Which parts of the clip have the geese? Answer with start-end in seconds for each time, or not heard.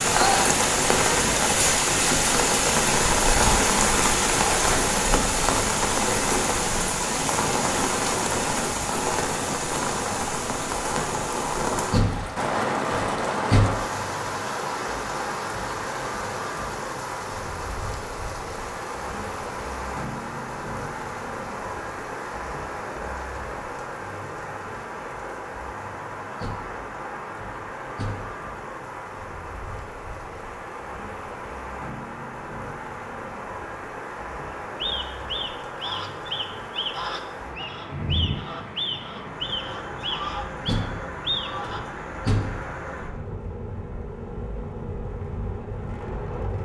34.5-41.8.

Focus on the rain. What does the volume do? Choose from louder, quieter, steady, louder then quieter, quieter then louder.
quieter.